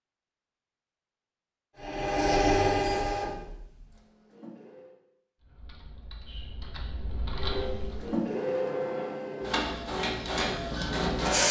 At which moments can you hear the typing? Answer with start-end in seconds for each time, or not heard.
5.4-8.2.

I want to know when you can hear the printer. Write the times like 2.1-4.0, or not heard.
1.8-5.0, 7.3-11.4.